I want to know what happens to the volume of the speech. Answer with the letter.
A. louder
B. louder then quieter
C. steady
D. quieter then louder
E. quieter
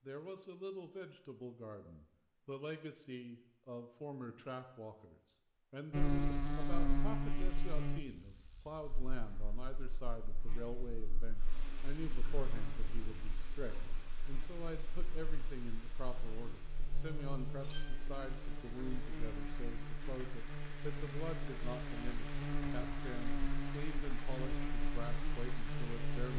C.